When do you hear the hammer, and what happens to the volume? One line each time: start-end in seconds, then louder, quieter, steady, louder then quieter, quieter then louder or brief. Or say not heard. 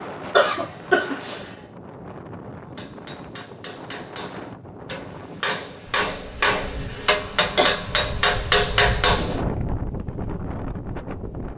2.8-9.4 louder.